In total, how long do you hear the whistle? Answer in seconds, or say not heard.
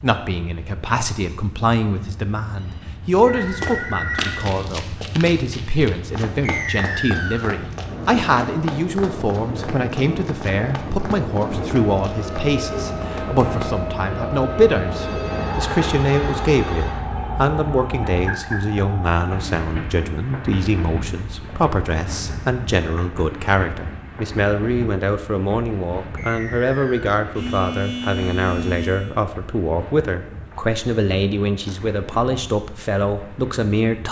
2 s.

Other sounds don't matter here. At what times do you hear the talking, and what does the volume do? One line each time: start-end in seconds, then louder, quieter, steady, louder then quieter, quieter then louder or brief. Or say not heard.
0.0-34.0 steady.